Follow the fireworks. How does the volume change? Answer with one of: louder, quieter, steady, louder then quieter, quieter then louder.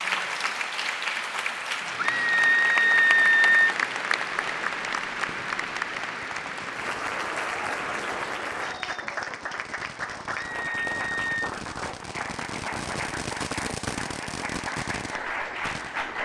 louder.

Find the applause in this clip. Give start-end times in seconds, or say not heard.
0.0-16.2.